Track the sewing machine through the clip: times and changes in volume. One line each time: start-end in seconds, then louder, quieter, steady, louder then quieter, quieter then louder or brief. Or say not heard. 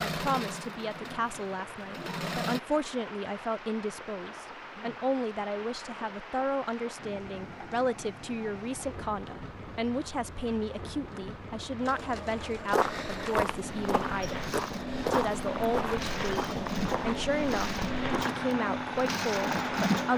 0.0-2.6 brief
11.8-20.1 louder.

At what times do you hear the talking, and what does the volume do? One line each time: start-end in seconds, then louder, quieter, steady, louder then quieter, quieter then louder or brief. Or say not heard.
0.1-20.1 steady.